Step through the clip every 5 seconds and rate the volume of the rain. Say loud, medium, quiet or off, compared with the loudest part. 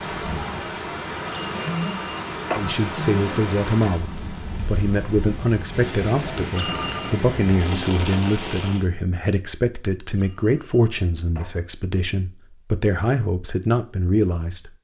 loud, loud, off.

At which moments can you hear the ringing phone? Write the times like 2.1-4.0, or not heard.
1.3-2.6, 6.5-7.2, 10.2-11.6.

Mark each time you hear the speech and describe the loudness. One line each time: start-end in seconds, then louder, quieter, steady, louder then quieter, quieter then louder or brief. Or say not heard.
2.5-14.7 steady.